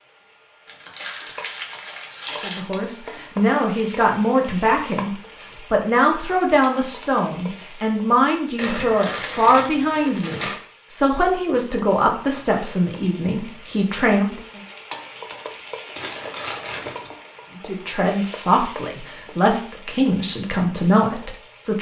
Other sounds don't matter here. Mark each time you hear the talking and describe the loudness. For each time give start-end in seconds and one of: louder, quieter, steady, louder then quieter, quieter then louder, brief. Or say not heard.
2.4-14.6 steady
17.6-21.7 quieter then louder.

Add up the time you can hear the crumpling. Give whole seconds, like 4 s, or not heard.
5 s.